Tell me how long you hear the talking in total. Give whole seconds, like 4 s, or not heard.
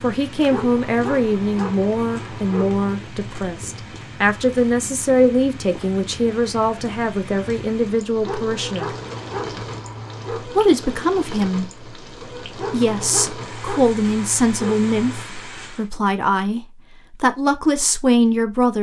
16 s.